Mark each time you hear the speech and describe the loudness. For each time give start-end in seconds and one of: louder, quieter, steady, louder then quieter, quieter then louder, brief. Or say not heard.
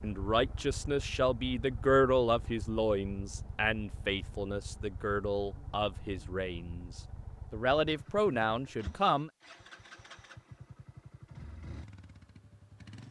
0.0-9.3 quieter then louder.